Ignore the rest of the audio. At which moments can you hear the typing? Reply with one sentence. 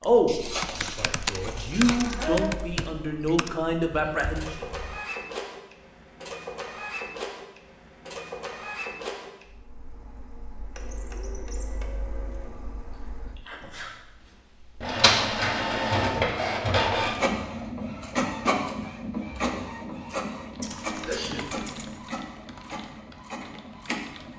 The typing can be heard from 0.0 to 5.0 s and from 20.5 to 24.3 s.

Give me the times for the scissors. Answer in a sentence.
The scissors can be heard from 0.2 to 2.3 s and from 20.6 to 22.0 s.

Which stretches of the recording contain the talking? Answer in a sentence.
You can hear the talking from 0.0 to 4.7 s.